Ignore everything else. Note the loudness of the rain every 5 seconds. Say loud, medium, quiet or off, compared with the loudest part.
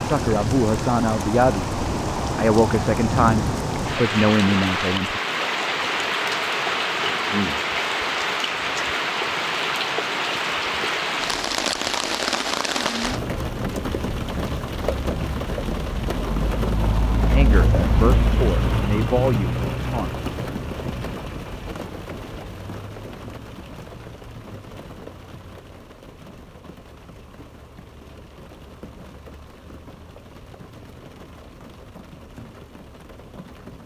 loud, loud, loud, loud, medium, quiet, quiet.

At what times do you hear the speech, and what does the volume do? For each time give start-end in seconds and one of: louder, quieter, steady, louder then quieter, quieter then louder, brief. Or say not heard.
0.0-5.2 steady
17.3-20.2 brief.